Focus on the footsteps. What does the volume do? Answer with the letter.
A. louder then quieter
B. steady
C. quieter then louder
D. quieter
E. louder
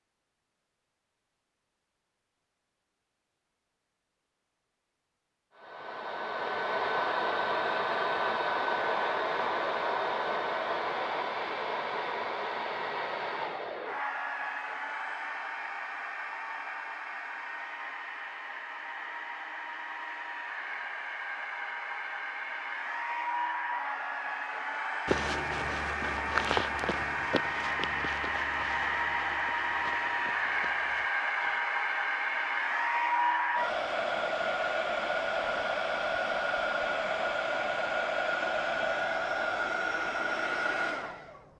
D.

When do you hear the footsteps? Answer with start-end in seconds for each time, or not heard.
25.1-31.6.